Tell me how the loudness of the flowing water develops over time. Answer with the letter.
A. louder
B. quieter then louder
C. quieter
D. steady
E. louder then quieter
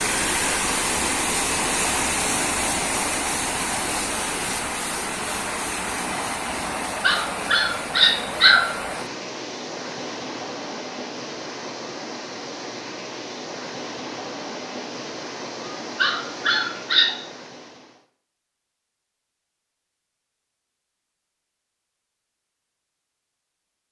C.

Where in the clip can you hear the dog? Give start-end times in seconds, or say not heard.
7.0-8.7, 15.7-17.1.